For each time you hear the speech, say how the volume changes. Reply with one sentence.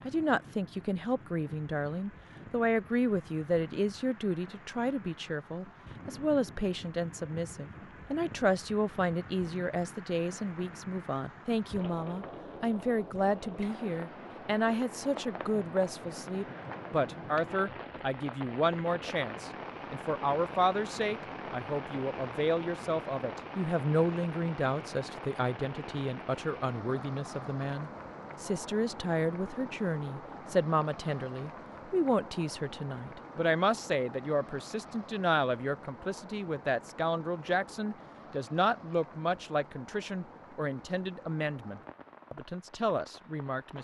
You can hear the speech from 0.1 to 43.8 s, at a steady volume.